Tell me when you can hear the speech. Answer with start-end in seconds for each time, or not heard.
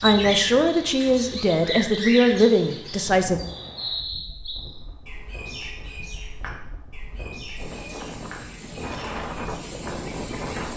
0.0-3.4.